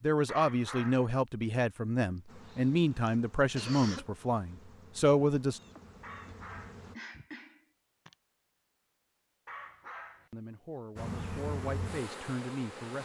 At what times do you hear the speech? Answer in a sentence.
You can hear the speech from 0.0 to 5.6 s and from 10.3 to 13.0 s.